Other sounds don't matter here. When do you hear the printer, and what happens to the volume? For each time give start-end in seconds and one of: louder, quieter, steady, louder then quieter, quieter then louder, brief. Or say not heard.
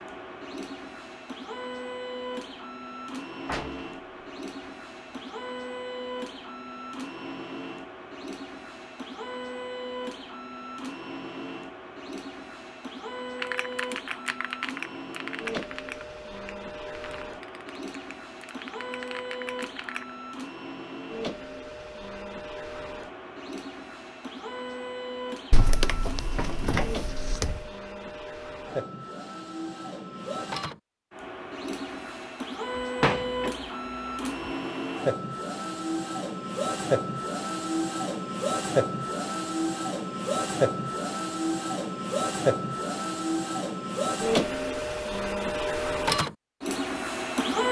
0.0-47.6 louder.